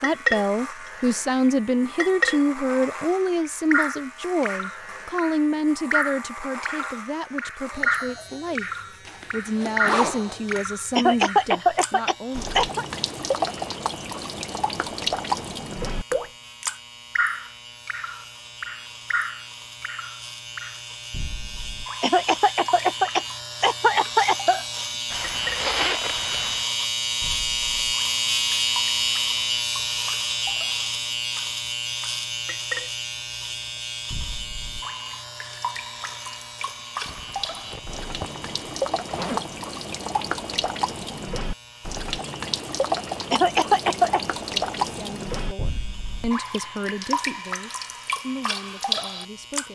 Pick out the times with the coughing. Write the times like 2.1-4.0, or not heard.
10.9-12.8, 22.0-24.6, 43.3-44.4.